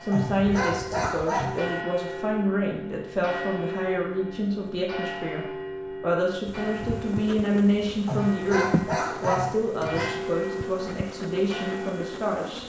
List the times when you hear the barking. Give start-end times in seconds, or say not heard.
0.1-1.6, 8.1-10.1.